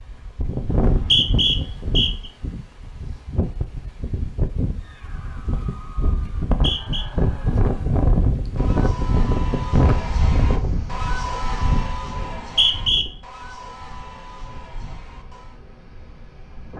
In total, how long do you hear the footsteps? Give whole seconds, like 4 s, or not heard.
not heard.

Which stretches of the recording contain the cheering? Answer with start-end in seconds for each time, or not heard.
4.8-15.6.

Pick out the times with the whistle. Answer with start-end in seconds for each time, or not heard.
0.7-2.3, 6.5-7.0, 12.2-13.1.